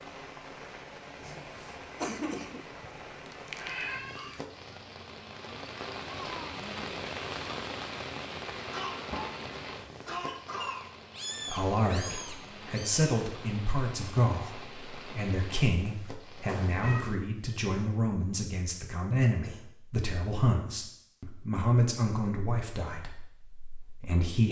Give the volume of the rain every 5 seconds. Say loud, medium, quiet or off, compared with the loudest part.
medium, loud, medium, medium, off.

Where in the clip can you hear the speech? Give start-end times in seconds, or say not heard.
11.4-24.4.